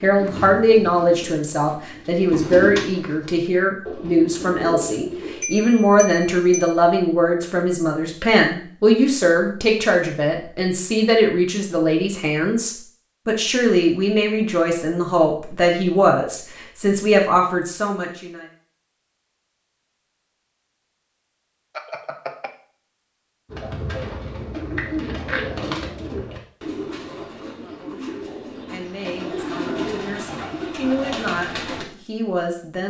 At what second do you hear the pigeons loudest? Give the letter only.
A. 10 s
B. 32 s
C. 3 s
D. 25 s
C.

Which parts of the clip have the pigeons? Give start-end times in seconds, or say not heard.
0.0-5.5, 23.5-31.9.